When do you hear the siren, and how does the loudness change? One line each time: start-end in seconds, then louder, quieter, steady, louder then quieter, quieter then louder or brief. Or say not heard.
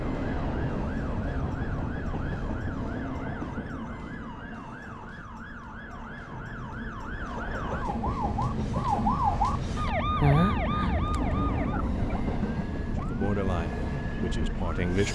0.0-15.1 louder then quieter.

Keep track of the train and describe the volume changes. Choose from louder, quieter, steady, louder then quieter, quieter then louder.
quieter then louder.